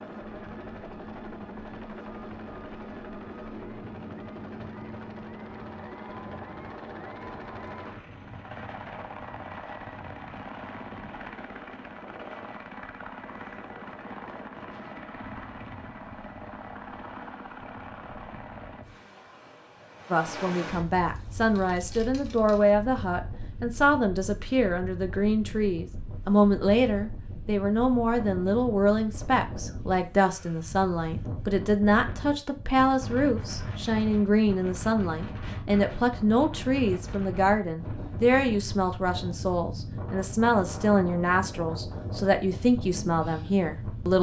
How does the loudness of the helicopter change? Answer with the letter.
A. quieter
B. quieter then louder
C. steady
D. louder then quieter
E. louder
C.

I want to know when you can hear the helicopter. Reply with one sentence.
You can hear the helicopter from 0.0 to 18.9 s.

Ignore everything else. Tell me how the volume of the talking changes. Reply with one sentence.
The volume of the talking stays about the same.